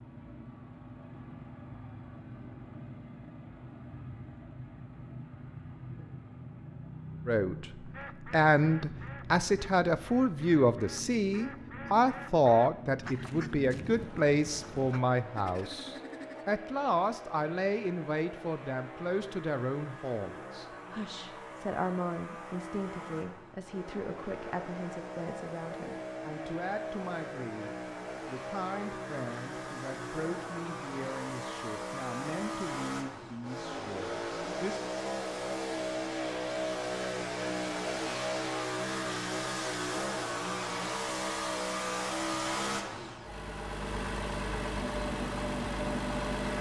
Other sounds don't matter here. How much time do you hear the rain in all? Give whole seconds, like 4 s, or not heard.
not heard.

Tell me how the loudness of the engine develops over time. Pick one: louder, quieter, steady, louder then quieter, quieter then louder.
louder.